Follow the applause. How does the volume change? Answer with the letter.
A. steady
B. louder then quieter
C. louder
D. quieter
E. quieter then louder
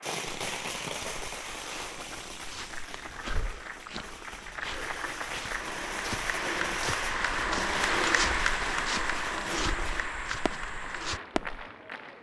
B.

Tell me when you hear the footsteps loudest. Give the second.
8 s.